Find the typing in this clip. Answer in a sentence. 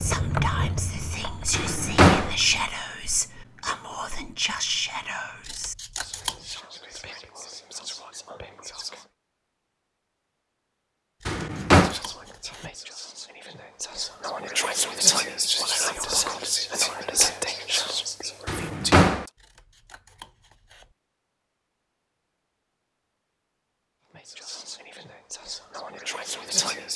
You can hear the typing from 0.0 to 2.7 s.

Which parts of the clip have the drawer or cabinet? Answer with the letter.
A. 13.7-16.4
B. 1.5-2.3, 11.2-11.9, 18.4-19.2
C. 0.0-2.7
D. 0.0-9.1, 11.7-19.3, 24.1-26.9
B.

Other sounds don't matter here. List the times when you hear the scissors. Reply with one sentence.
The scissors can be heard from 5.4 to 6.6 s, from 11.2 to 12.8 s and from 19.4 to 20.9 s.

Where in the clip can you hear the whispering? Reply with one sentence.
You can hear the whispering from 0.0 to 9.1 s, from 11.7 to 19.3 s and from 24.1 to 26.9 s.